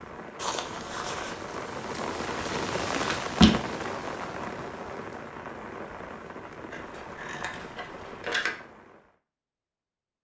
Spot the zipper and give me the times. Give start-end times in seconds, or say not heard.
0.3-1.5.